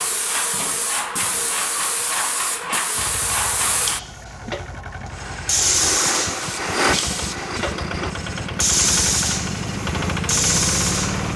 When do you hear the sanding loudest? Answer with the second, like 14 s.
7 s.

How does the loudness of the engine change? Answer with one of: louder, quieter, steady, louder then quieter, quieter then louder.
louder.